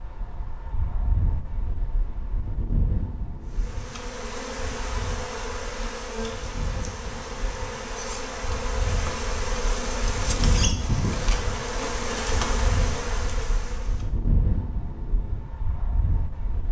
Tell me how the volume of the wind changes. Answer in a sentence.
The volume of the wind goes down, then up.